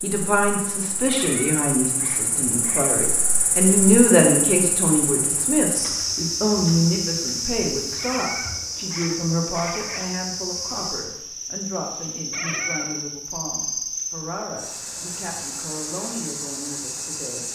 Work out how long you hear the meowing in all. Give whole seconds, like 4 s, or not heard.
5 s.